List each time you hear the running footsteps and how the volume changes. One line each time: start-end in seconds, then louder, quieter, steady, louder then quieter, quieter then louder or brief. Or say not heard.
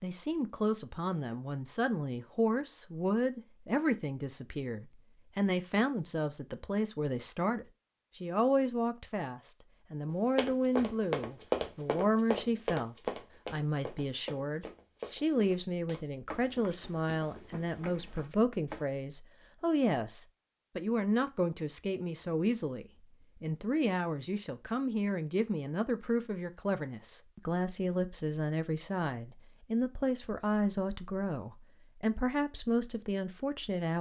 10.1-18.9 quieter.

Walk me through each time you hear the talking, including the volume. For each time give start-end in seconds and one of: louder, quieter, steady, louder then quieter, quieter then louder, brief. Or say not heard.
0.0-33.9 steady.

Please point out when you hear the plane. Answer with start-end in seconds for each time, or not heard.
not heard.